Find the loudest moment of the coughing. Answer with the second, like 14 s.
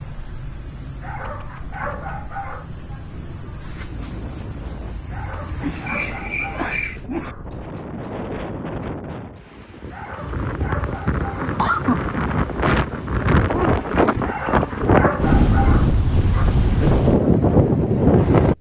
12 s.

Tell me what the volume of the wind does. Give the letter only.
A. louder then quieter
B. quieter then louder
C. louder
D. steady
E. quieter
C.